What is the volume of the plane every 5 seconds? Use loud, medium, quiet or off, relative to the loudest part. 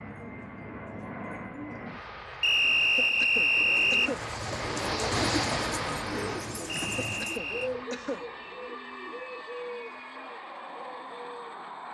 loud, loud, medium.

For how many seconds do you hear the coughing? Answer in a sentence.
You can hear the coughing for 3 seconds altogether.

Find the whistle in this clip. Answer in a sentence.
You can hear the whistle from 2.4 to 4.1 s and from 6.7 to 7.7 s.